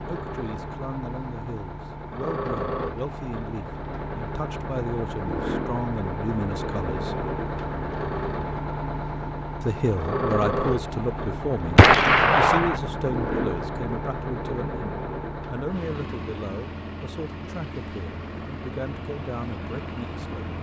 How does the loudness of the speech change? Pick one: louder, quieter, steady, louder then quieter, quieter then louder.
louder then quieter.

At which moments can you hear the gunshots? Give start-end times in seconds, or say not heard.
11.8-12.8.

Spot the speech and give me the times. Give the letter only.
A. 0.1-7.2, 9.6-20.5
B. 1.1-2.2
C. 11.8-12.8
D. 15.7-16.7
A.